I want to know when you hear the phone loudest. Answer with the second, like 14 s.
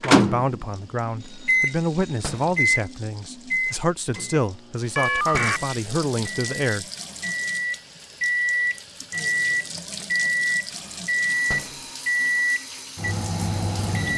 5 s.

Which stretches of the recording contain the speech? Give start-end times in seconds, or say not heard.
0.0-6.8.